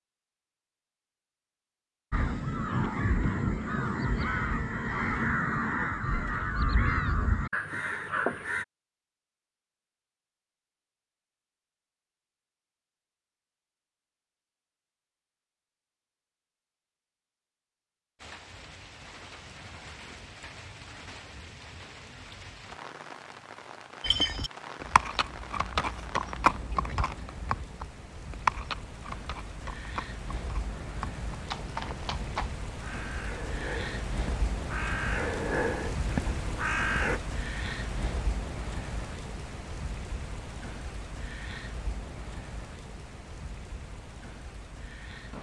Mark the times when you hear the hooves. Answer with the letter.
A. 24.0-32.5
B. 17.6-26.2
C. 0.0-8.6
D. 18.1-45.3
A.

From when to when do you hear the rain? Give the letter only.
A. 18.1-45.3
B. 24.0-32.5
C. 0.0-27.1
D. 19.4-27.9
A.